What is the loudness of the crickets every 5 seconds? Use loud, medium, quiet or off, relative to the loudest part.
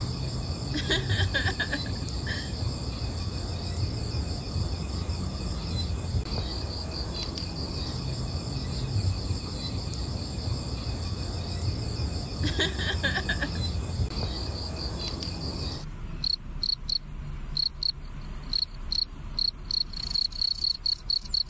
medium, medium, medium, loud, loud.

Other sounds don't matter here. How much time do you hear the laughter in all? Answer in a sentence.
The laughter can be heard for 3 seconds in total.